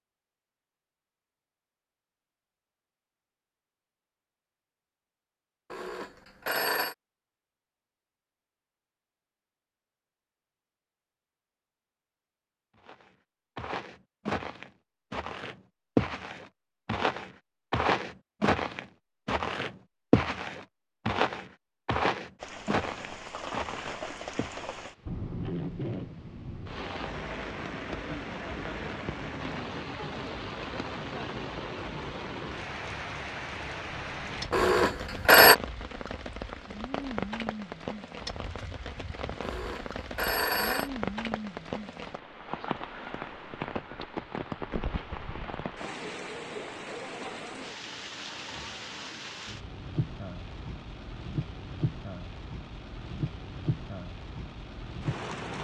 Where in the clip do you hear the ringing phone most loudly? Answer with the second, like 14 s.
35 s.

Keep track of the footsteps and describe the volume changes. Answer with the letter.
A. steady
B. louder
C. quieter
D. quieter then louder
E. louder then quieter
E.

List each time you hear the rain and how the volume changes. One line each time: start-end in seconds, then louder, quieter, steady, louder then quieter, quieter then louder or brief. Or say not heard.
22.4-55.6 steady.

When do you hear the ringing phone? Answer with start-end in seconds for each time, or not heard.
5.7-7.0, 34.5-35.5, 39.4-40.9.